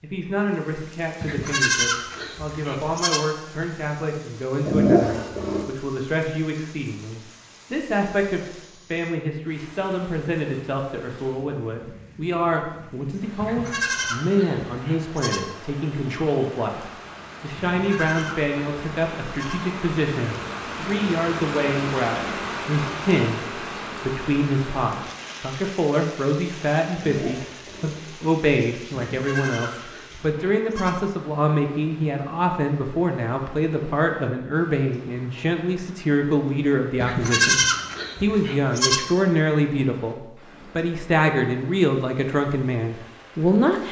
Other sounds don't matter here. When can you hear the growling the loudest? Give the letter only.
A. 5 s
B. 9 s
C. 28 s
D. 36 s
A.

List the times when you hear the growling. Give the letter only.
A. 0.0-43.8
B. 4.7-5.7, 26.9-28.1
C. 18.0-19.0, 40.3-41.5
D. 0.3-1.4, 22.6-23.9
B.